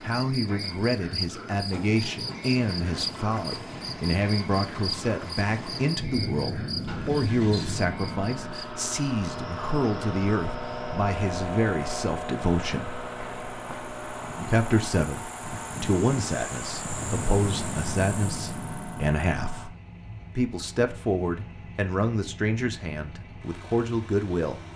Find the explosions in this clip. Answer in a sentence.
You can hear the explosions from 6.0 to 8.6 s and from 16.9 to 19.7 s.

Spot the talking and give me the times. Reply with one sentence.
The talking can be heard from 0.0 to 12.9 s, from 14.4 to 19.7 s and from 20.4 to 24.6 s.